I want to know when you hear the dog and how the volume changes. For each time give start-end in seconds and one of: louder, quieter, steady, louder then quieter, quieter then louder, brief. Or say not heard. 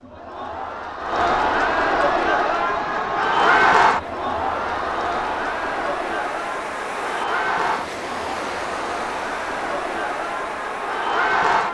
not heard.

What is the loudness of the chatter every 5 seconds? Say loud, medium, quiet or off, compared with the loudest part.
loud, medium, loud.